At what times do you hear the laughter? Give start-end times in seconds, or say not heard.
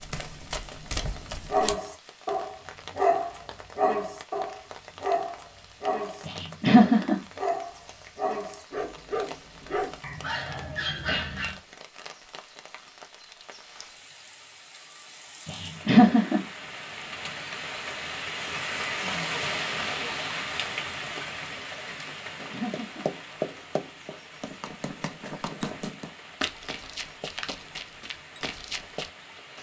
6.2-7.2, 15.8-16.4, 22.5-23.1.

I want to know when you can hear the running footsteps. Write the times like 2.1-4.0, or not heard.
0.0-1.8, 22.4-29.1.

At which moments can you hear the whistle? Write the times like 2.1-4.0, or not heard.
not heard.